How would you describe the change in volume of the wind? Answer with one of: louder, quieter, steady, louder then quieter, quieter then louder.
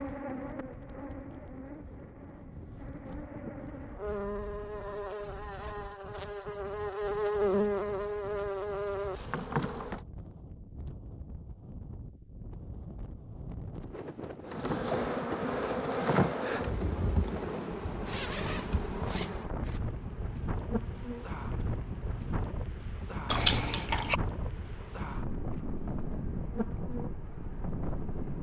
louder.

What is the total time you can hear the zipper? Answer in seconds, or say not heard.
2 s.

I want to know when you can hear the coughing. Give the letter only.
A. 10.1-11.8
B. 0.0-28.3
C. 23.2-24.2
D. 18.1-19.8
C.